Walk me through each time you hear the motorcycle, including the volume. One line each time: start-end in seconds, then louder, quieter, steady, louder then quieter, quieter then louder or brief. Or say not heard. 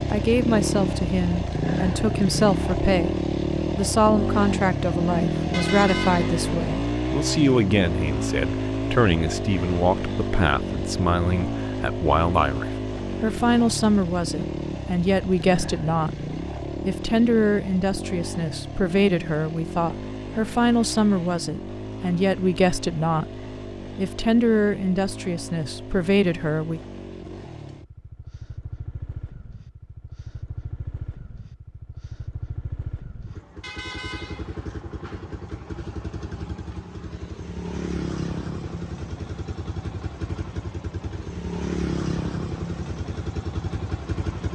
0.0-44.5 quieter then louder.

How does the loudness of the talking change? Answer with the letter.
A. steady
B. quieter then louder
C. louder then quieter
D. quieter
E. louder
A.